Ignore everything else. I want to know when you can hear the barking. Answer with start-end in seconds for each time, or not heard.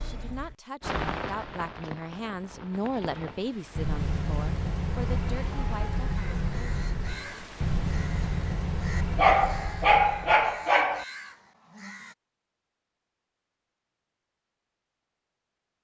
9.2-11.1.